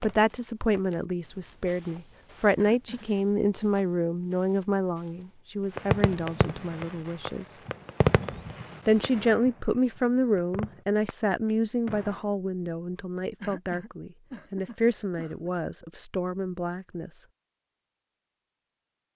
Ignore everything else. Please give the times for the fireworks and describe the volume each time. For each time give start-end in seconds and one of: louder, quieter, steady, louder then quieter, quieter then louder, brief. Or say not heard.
5.8-12.2 louder then quieter.